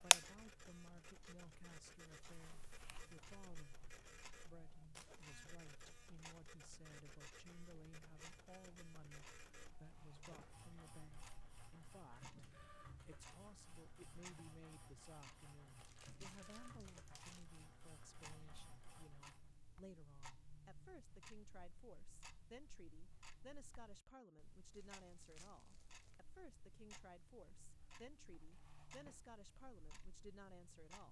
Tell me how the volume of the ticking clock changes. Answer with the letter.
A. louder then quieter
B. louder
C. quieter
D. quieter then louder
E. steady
E.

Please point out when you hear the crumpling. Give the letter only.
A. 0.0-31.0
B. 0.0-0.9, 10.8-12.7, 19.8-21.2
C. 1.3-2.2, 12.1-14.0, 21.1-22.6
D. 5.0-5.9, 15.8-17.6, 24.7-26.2
D.